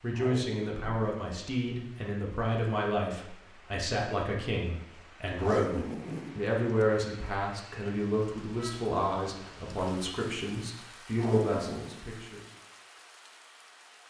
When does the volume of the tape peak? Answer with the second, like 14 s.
6 s.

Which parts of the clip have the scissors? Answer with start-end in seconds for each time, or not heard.
not heard.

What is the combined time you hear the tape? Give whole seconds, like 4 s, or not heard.
3 s.